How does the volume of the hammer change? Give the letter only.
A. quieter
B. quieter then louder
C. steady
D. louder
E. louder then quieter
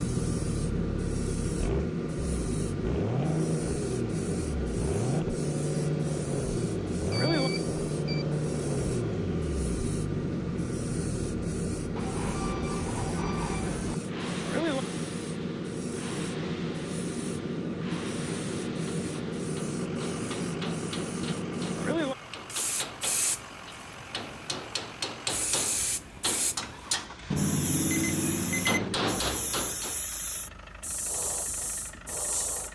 D.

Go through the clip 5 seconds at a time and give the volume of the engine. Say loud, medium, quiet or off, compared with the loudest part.
loud, loud, medium, quiet, quiet, quiet, quiet.